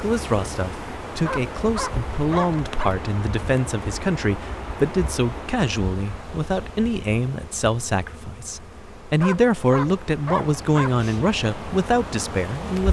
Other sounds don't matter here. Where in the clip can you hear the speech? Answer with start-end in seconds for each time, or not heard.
0.0-12.8.